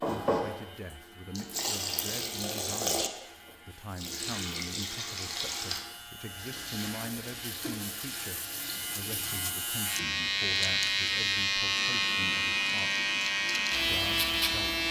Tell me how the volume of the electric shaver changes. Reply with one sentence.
The volume of the electric shaver goes up.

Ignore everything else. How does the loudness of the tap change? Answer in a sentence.
The loudness of the tap goes down.